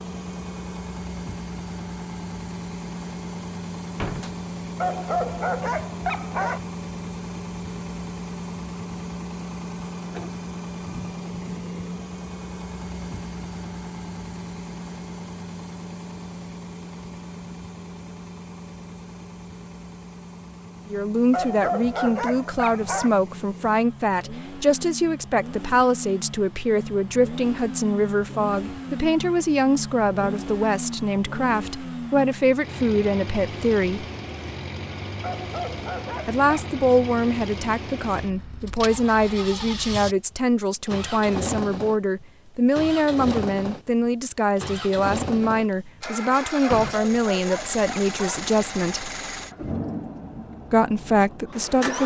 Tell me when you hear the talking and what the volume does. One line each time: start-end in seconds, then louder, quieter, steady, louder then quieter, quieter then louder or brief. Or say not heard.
20.9-34.0 steady
36.2-49.1 steady
50.7-52.0 brief.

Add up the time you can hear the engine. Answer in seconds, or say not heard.
52 s.